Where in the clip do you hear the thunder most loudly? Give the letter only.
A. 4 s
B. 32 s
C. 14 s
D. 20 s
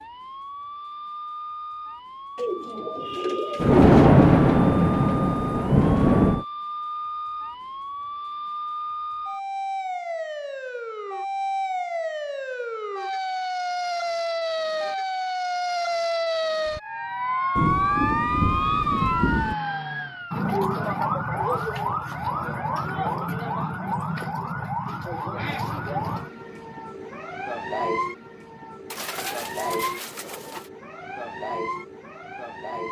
A.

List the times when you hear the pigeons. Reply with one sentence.
The pigeons can be heard from 2.4 to 4.0 s and from 28.9 to 30.7 s.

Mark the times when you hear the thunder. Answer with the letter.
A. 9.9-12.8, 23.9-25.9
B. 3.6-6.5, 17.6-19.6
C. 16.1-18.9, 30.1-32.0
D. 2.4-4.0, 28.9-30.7
B.